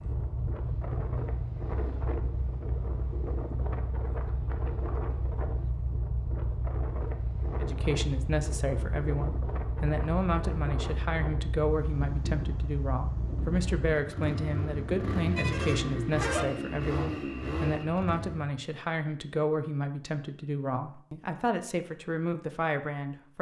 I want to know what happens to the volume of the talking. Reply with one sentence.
The volume of the talking stays about the same.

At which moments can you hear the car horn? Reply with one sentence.
The car horn can be heard from 15.3 to 16.4 s.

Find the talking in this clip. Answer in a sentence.
The talking can be heard from 7.6 to 23.3 s.